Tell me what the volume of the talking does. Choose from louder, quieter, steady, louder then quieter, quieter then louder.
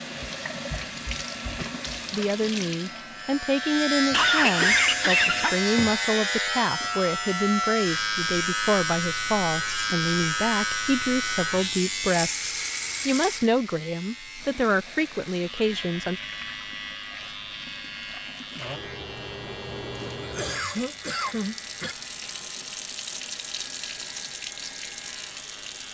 steady.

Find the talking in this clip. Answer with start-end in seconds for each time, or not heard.
2.1-16.2.